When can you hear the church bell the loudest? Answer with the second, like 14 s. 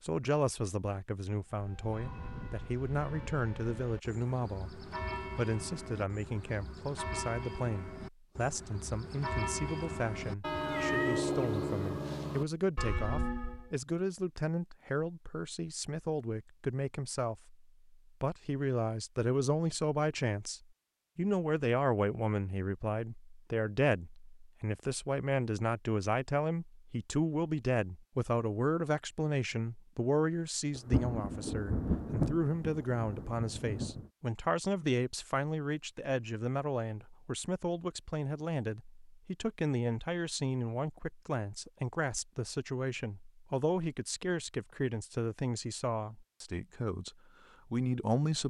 11 s.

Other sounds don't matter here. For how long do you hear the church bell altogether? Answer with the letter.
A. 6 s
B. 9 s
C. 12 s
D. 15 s
C.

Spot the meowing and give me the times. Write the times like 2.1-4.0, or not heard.
10.5-11.2.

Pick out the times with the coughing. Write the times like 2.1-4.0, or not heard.
not heard.